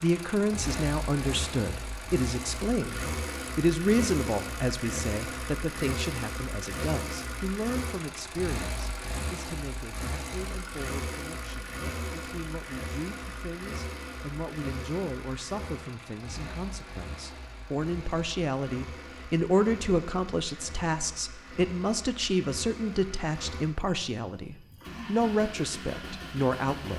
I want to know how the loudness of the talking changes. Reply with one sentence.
The volume of the talking goes down, then up.